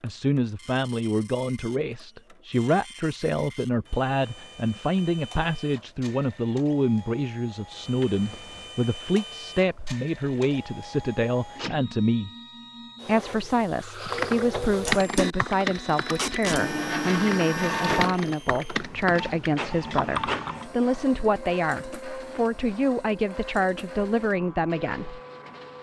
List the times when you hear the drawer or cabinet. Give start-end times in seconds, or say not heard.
7.9-8.7, 16.4-18.4.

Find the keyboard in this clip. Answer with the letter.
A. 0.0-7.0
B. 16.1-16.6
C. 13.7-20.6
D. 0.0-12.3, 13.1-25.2
C.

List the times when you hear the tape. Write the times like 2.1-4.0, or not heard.
16.1-16.6.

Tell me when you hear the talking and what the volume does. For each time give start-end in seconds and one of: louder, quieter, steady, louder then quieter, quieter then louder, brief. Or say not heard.
0.0-12.3 steady
13.1-25.2 steady.